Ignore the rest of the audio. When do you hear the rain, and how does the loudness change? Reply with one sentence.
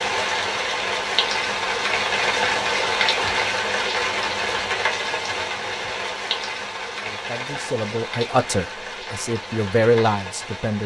The rain can be heard from 0.0 to 10.8 s, getting quieter.